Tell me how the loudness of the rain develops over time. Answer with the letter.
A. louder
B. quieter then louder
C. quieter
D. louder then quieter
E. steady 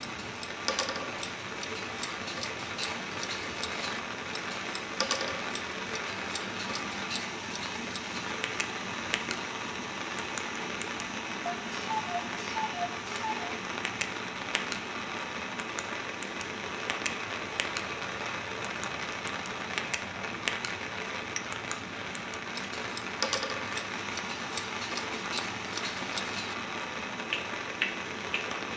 E.